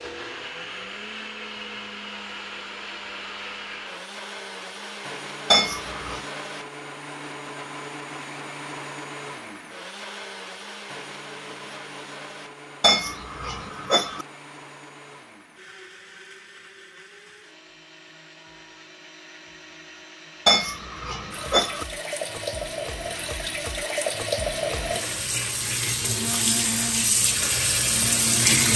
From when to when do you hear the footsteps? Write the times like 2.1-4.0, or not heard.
not heard.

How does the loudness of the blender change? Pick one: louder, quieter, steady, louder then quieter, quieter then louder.
quieter then louder.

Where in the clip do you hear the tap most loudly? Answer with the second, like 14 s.
28 s.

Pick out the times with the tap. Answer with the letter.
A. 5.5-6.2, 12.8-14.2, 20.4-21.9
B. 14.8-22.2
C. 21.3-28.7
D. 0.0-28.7
C.